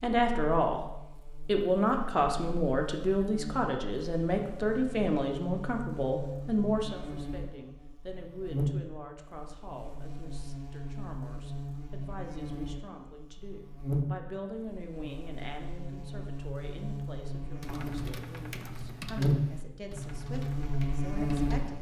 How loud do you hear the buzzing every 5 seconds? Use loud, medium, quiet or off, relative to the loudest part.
quiet, medium, medium, loud, loud.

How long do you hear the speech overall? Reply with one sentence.
You can hear the speech for 22 seconds altogether.